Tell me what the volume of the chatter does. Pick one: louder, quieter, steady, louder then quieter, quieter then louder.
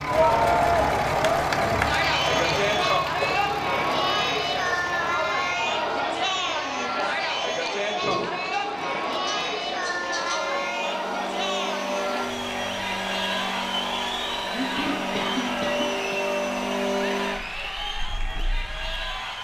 quieter.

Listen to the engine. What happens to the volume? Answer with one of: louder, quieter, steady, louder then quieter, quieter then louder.
quieter then louder.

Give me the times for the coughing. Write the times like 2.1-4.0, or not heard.
2.2-3.4, 8.0-10.4, 14.5-16.2.